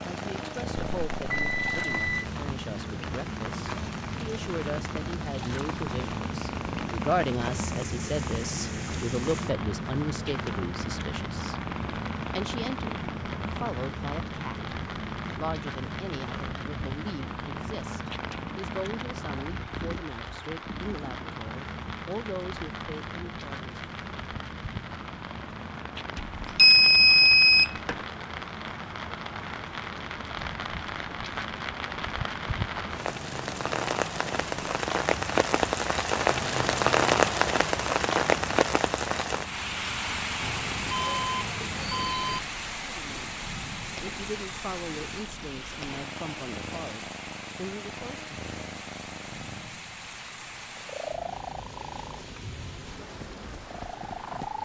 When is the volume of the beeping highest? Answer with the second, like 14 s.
27 s.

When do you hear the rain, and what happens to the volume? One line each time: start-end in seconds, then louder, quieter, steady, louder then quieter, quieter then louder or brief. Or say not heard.
0.0-54.5 louder then quieter.